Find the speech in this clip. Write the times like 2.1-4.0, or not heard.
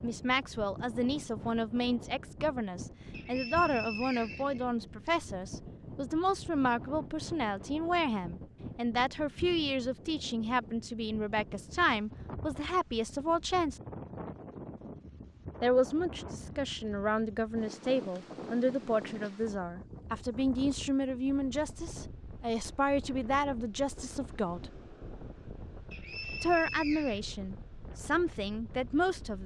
0.0-13.8, 15.6-24.7, 26.4-29.4.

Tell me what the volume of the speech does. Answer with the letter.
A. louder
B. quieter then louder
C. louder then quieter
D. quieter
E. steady
E.